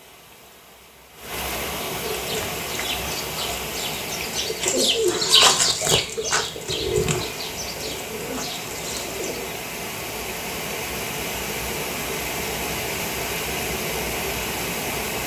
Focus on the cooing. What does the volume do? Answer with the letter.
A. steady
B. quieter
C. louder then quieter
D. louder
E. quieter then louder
C.